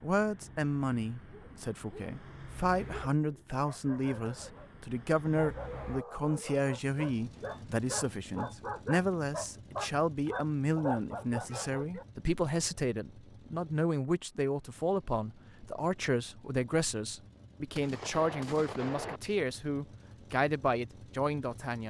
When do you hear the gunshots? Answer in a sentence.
You can hear the gunshots from 17.8 to 19.2 s.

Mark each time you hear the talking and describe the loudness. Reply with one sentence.
You can hear the talking from 0.0 to 21.8 s, at a steady volume.